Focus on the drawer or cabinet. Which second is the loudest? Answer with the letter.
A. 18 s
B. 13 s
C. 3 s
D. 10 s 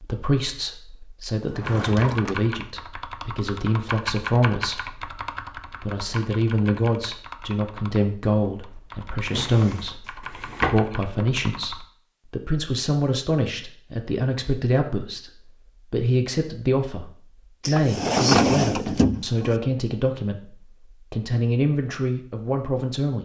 A.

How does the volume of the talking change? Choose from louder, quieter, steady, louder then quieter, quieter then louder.
steady.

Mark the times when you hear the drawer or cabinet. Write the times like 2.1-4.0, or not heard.
1.5-2.4, 9.2-10.8, 17.6-19.6.